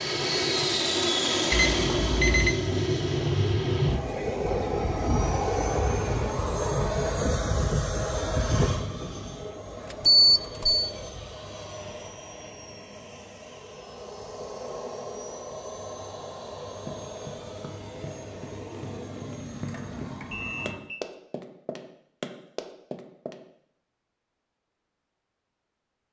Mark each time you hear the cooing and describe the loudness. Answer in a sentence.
The cooing can't be heard in this clip.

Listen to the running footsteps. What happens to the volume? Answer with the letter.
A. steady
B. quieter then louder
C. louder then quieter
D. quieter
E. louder
E.